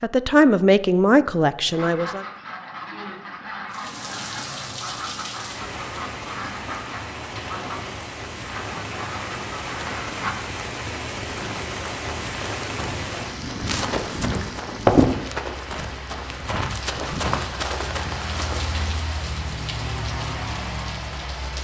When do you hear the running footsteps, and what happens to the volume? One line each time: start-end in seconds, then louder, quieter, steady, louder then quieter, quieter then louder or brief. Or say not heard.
11.4-18.9 louder then quieter.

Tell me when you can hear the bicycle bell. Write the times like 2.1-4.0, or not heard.
not heard.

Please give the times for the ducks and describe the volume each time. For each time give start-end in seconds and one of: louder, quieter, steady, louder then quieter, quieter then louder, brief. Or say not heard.
1.7-10.3 steady.